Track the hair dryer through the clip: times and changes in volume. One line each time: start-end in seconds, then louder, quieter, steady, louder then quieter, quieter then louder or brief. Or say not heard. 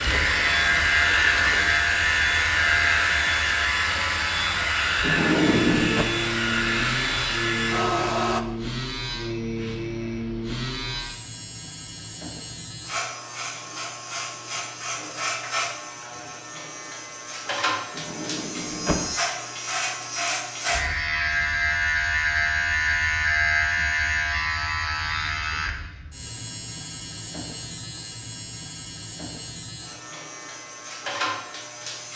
0.0-8.4 steady.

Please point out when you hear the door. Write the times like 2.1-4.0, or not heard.
5.0-6.0, 17.9-19.1.